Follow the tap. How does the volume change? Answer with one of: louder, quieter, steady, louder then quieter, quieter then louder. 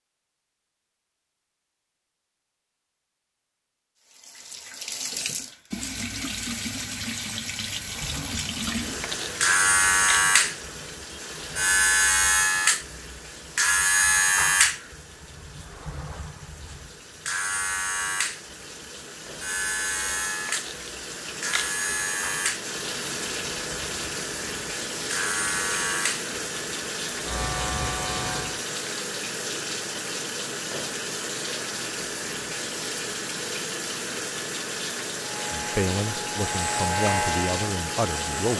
quieter then louder.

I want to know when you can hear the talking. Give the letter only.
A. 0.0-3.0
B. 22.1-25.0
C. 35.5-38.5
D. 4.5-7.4
C.